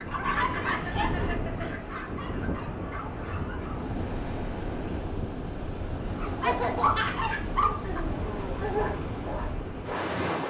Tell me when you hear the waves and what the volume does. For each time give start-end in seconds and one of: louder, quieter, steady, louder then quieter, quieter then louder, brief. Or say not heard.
0.0-10.4 steady.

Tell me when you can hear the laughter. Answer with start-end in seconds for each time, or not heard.
0.3-1.8, 6.2-8.9.